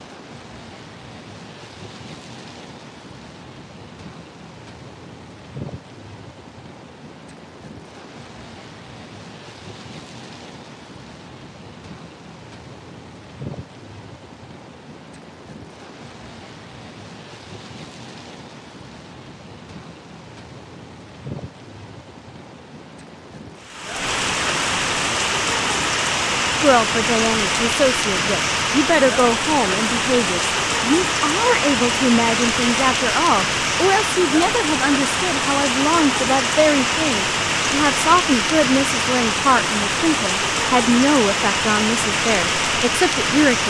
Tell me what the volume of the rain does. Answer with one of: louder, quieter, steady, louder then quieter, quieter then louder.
louder.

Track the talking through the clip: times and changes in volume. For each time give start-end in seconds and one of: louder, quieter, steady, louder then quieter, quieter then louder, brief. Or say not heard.
26.6-43.6 steady.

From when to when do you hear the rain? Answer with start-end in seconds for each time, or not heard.
0.0-43.6.